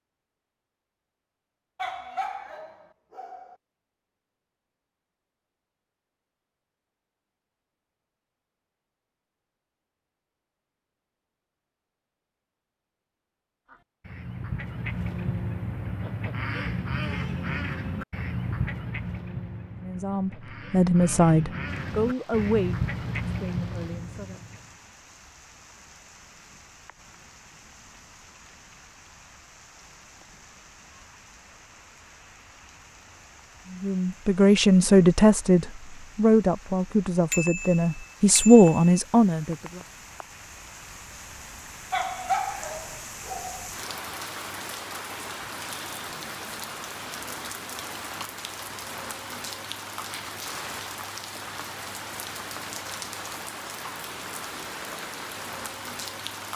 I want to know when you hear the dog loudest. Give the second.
42 s.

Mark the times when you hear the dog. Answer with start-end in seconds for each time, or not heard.
1.8-3.5, 41.9-43.7.